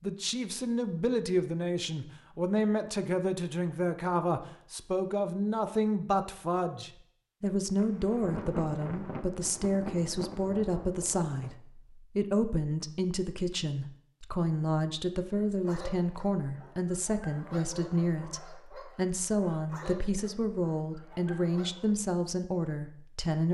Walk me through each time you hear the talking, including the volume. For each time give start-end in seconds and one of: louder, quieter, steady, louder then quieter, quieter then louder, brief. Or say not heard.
0.0-23.4 steady.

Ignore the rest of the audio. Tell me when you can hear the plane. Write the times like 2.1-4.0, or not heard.
not heard.